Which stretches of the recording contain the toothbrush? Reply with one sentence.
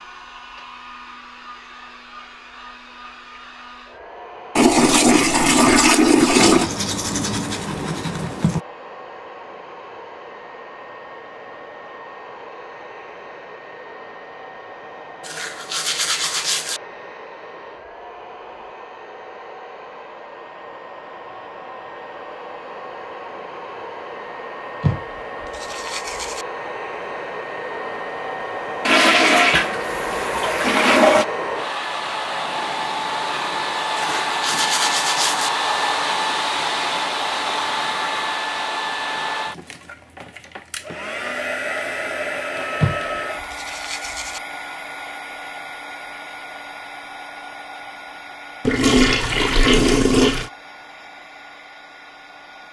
The toothbrush can be heard from 6.3 to 8.7 s, from 15.2 to 16.8 s, from 24.8 to 26.4 s, from 34.0 to 35.5 s and from 42.8 to 44.4 s.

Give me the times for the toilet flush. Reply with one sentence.
The toilet flush can be heard from 4.5 to 6.7 s, from 28.9 to 31.2 s and from 48.6 to 50.5 s.